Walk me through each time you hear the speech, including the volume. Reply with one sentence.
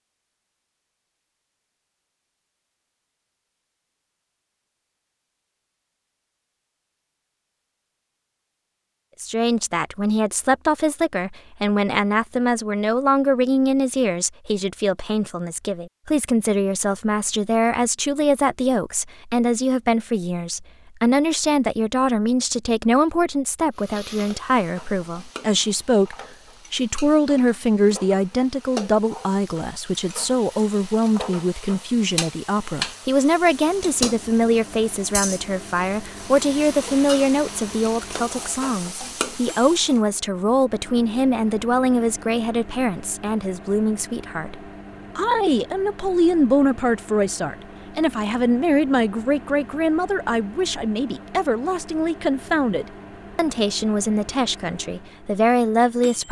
The speech can be heard from 9.2 to 56.2 s, at a steady volume.